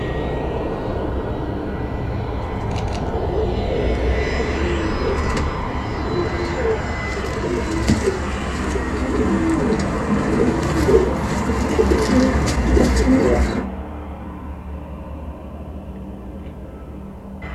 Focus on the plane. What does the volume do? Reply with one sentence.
The loudness of the plane goes down.